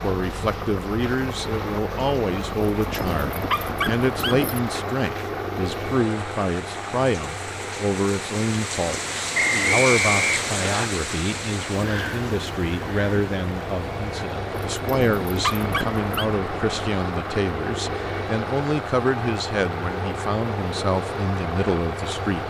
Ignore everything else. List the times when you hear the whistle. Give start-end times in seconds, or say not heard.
9.3-10.8.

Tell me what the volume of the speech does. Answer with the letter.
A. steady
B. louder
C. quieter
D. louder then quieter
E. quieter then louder
A.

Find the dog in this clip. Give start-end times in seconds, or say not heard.
2.7-4.6, 14.5-16.3.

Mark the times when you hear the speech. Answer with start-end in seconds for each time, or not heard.
0.0-22.4.